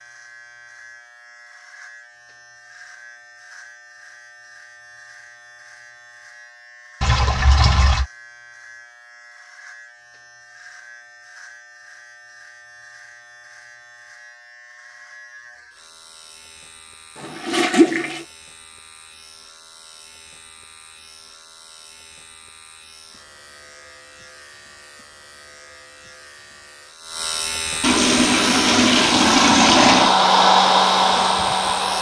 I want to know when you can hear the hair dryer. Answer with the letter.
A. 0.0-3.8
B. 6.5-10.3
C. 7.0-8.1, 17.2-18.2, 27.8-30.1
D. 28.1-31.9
D.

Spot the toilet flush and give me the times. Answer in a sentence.
The toilet flush can be heard from 7.0 to 8.1 s, from 17.2 to 18.2 s and from 27.8 to 30.1 s.